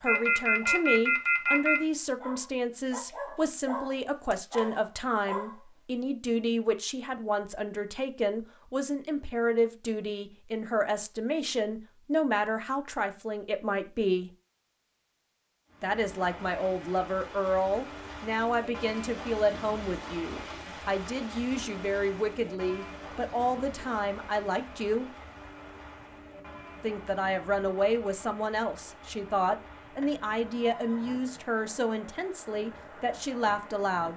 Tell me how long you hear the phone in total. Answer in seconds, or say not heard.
3 s.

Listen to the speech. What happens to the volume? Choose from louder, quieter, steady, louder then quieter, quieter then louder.
steady.